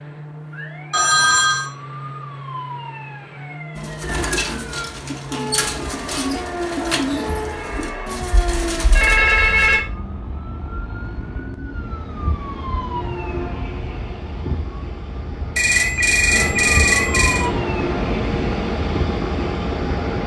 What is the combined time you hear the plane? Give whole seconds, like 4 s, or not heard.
20 s.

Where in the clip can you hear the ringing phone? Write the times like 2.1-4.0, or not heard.
0.9-1.7, 7.2-9.8, 15.6-17.4.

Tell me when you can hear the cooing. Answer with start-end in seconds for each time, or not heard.
3.8-9.2.